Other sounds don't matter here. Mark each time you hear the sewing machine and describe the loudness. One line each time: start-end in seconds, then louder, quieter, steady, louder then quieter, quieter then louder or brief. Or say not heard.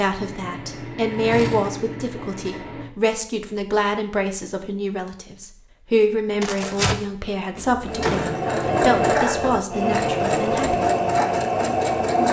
0.0-2.9 brief
7.8-12.2 steady.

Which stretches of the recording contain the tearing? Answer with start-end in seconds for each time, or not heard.
6.4-7.0.